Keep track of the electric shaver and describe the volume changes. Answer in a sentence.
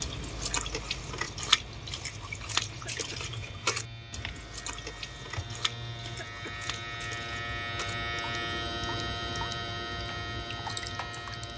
The loudness of the electric shaver goes up.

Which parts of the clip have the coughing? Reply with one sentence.
You can hear the coughing from 2.7 to 3.2 s and from 6.0 to 6.6 s.